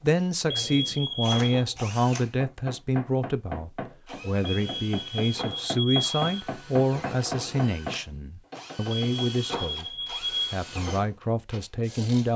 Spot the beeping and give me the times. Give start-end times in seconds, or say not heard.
0.5-1.6, 4.5-6.5, 9.1-10.6.